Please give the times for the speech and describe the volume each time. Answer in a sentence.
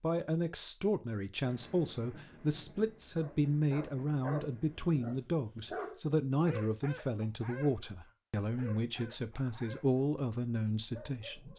You can hear the speech from 0.0 to 11.5 s, at a steady volume.